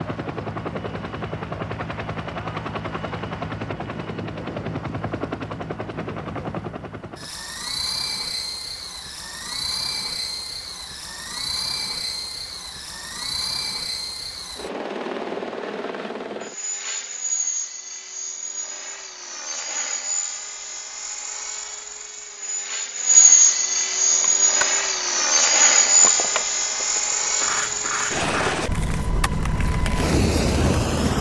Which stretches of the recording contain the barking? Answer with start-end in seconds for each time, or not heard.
not heard.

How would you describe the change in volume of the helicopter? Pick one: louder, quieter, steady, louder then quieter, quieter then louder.
louder.